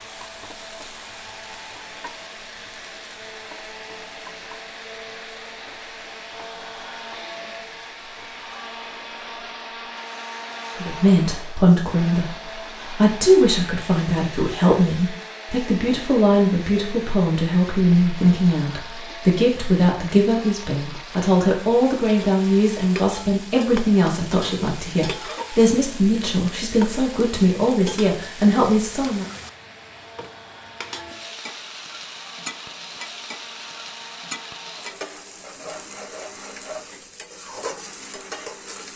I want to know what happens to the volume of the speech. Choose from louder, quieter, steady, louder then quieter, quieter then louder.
steady.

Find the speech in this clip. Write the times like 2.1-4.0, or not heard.
10.8-29.2.